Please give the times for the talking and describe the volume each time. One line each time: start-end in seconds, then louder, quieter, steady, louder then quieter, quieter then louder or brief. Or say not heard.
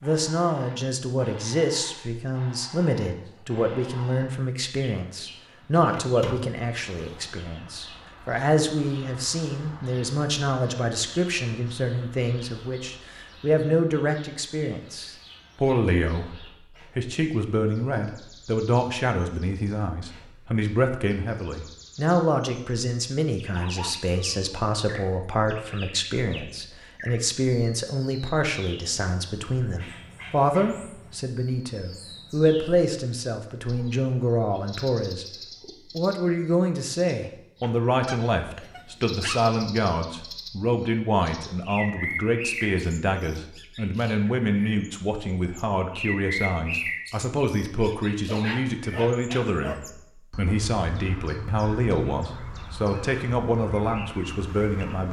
0.0-55.0 steady.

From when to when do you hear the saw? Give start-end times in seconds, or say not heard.
not heard.